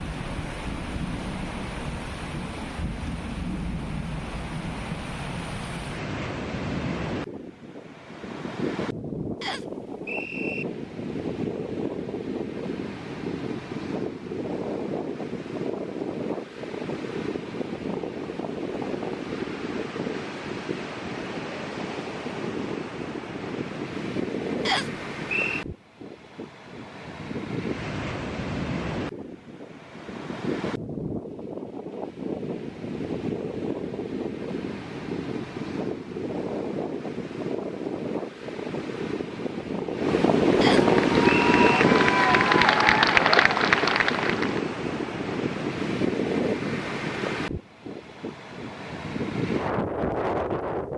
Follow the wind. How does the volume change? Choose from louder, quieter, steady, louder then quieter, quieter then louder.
louder.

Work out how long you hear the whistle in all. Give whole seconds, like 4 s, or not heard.
3 s.